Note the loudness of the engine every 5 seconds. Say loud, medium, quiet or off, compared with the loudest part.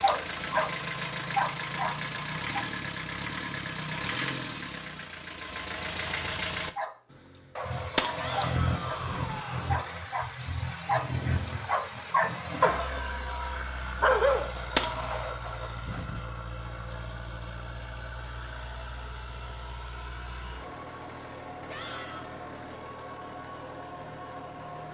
loud, loud, loud, medium, medium.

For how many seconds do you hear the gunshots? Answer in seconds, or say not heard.
4 s.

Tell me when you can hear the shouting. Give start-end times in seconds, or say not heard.
8.2-9.8, 21.6-22.3.